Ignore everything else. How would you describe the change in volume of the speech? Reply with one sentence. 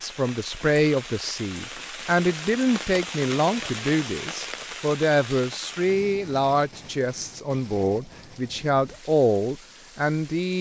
The volume of the speech stays about the same.